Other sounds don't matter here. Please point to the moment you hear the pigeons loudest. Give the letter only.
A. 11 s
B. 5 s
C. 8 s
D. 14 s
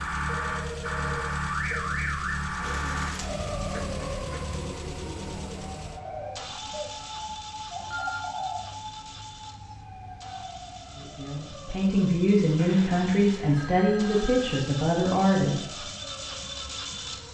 C.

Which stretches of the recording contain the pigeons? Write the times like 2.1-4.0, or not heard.
2.6-9.2.